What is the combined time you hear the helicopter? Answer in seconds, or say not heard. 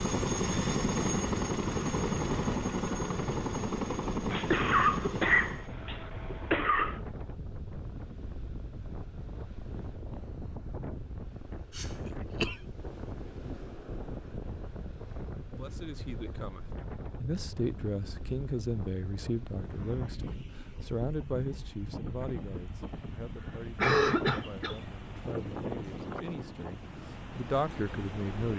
6 s.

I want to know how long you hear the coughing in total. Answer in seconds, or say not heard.
5 s.